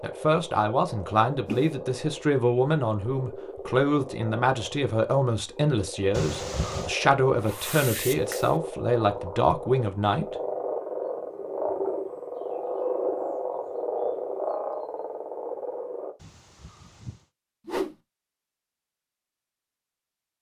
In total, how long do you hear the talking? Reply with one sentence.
The talking can be heard for 10 seconds in total.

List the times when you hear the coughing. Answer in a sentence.
You can hear the coughing from 6.1 to 7.0 s and from 16.2 to 17.2 s.